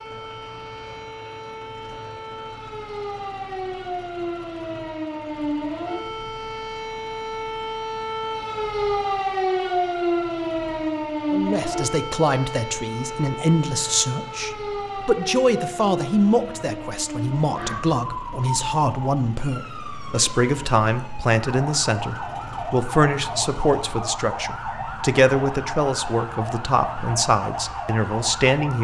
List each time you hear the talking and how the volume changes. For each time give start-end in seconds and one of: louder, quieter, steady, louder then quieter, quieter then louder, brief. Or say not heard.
11.3-28.7 steady.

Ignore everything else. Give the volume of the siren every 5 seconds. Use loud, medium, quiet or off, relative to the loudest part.
medium, loud, loud, medium, medium, medium.